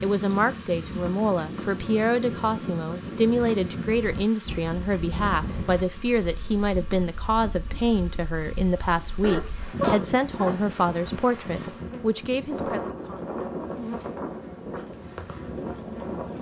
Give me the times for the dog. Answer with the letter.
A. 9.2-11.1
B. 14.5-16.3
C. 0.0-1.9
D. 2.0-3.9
A.